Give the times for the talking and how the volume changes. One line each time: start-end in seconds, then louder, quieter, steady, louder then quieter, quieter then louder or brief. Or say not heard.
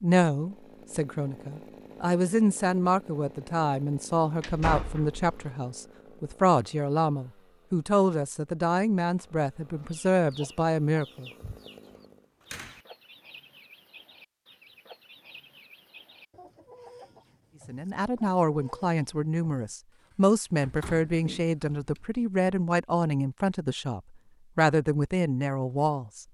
0.0-11.3 steady
17.6-26.2 steady.